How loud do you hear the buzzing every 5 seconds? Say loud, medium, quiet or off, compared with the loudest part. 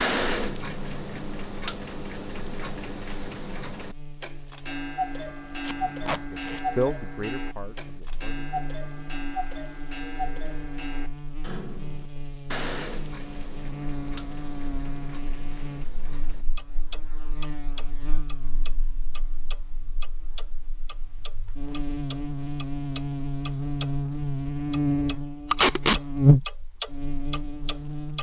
quiet, quiet, quiet, quiet, medium, loud.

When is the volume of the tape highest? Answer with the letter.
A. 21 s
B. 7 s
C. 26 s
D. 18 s
C.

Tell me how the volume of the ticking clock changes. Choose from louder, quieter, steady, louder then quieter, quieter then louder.
quieter.